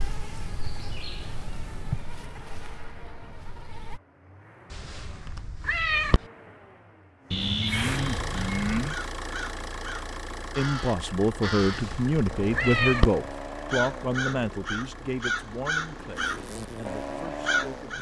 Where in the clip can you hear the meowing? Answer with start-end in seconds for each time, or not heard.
4.7-6.2, 11.6-13.1.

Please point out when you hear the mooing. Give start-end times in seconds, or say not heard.
7.3-8.9.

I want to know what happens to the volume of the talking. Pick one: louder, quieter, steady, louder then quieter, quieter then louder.
quieter.